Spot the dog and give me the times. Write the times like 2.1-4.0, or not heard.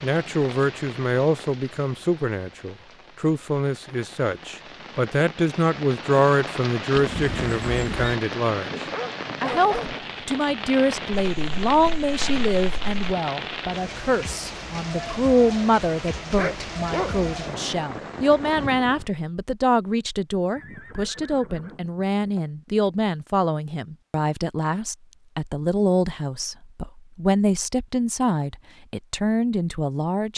8.9-9.9, 16.4-17.3.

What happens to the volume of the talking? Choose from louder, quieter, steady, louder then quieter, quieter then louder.
steady.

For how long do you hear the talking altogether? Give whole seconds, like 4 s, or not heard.
30 s.